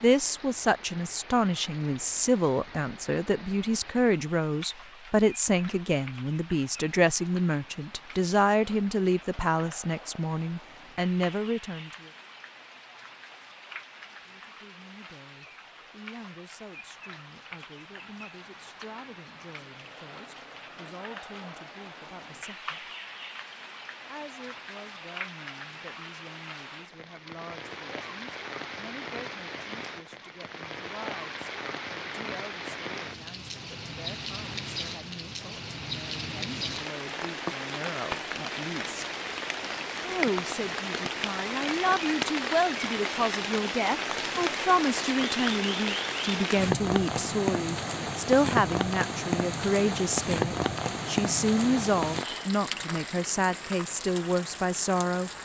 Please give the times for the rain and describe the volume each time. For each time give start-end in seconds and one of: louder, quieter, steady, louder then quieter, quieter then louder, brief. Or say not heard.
0.0-55.4 louder.